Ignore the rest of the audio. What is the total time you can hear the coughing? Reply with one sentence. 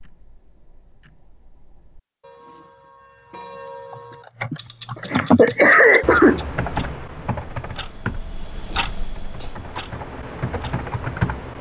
You can hear the coughing for 2 seconds altogether.